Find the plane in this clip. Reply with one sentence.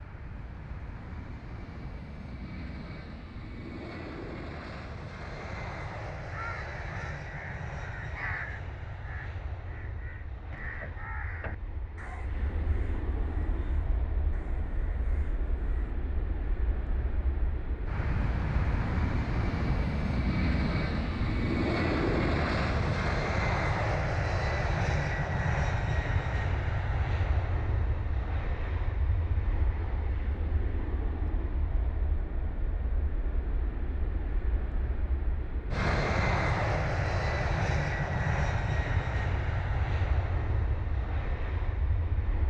The plane can be heard from 0.0 to 42.4 s.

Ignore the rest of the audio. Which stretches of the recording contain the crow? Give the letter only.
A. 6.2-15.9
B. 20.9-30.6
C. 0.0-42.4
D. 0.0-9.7
A.